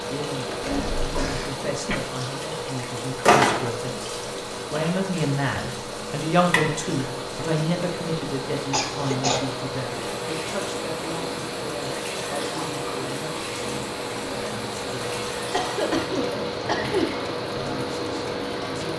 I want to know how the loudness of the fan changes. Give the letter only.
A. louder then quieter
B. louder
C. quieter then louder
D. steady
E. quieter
D.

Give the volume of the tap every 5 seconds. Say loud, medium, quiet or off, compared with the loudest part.
loud, medium, medium, medium.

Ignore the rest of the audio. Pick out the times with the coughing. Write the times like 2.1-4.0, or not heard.
0.6-2.0, 8.7-9.5, 15.5-17.1.